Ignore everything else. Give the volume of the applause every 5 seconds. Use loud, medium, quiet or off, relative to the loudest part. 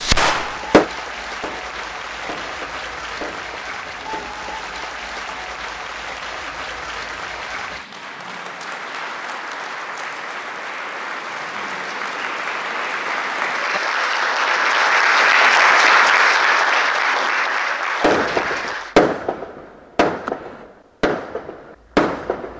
quiet, quiet, medium, loud, off.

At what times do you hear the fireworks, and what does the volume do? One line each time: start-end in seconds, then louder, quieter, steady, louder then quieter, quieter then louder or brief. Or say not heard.
0.0-4.3 quieter then louder
18.0-22.5 quieter then louder.